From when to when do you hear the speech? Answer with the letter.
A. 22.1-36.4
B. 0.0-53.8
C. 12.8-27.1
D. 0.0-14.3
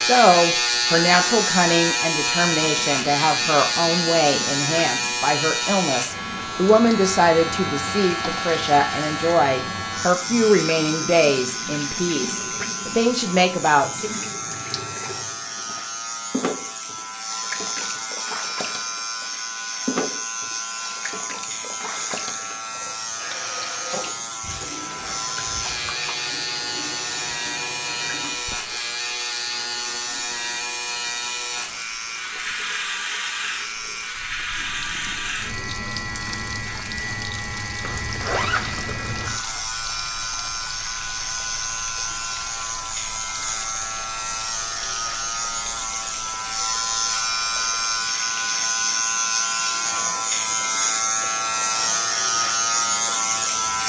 D.